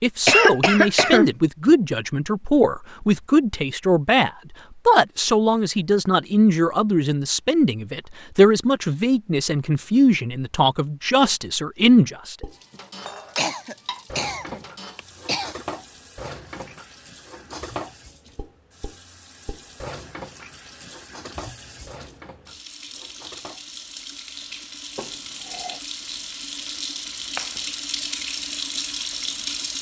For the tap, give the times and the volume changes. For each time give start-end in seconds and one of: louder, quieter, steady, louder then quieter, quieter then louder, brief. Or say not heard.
12.4-29.7 louder.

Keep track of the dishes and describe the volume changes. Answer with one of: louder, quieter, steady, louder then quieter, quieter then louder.
quieter.